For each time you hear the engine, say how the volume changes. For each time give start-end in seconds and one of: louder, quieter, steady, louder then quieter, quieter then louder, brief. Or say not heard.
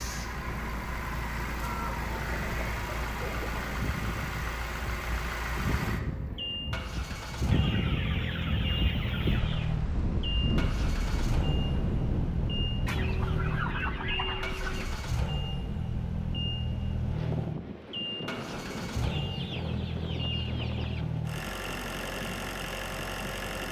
0.0-23.6 steady.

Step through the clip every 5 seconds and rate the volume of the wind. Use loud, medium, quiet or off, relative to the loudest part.
medium, loud, loud, medium, medium.